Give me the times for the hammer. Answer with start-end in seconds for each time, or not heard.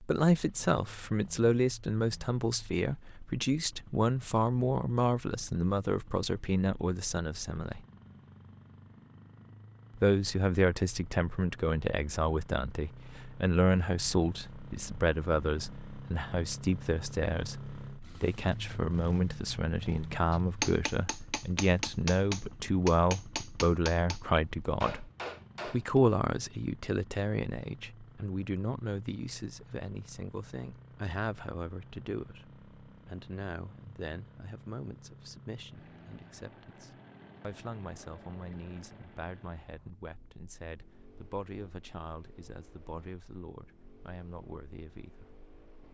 20.3-26.0.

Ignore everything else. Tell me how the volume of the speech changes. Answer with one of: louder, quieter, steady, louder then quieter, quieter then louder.
quieter.